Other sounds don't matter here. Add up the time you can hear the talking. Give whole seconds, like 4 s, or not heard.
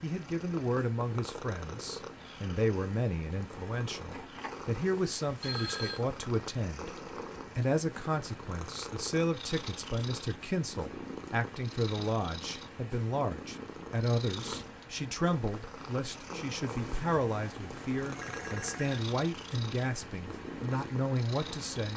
21 s.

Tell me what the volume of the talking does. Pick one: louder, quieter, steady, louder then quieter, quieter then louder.
steady.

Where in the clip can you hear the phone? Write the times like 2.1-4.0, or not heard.
5.4-6.0, 16.6-19.1.